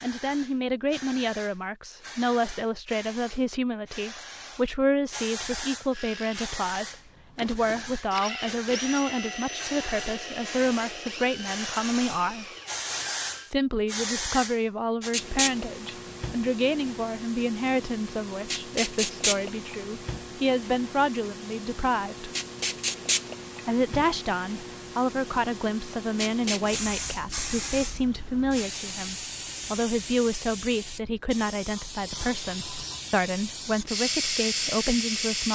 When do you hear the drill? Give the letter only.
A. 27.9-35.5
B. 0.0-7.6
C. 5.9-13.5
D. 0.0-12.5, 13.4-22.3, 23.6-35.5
C.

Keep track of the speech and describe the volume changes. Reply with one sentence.
The loudness of the speech stays about the same.